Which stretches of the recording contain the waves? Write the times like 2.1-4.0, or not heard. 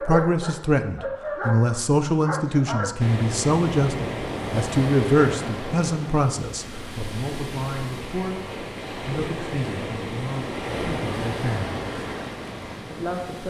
3.0-13.4.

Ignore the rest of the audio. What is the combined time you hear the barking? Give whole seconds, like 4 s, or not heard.
3 s.